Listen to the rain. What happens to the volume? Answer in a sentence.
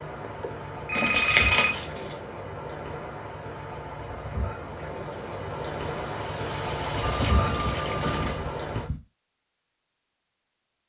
The loudness of the rain goes up.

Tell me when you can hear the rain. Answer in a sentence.
The rain can be heard from 0.0 to 8.9 s.